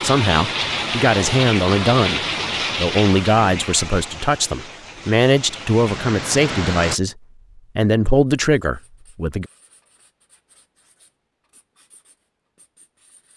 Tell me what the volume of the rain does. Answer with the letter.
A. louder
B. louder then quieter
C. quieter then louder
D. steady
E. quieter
C.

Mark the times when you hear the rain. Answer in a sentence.
You can hear the rain from 0.0 to 7.0 s.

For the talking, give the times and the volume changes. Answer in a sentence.
You can hear the talking from 0.0 to 7.2 s, at a steady volume; and briefly from 7.8 to 9.4 s.